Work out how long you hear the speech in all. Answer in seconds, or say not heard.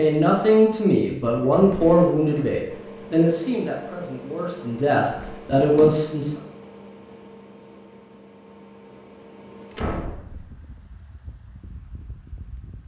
6 s.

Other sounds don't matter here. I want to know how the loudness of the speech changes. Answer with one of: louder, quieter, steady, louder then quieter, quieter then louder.
quieter then louder.